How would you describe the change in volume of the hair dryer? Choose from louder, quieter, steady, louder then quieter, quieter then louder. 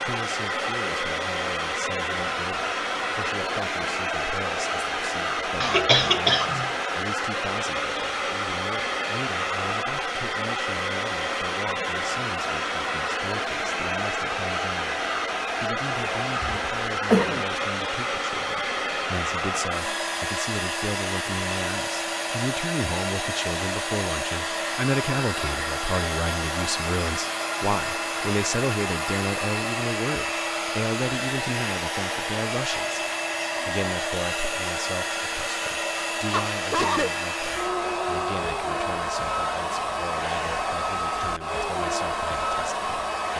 steady.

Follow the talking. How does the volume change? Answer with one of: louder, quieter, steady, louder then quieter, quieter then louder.
louder then quieter.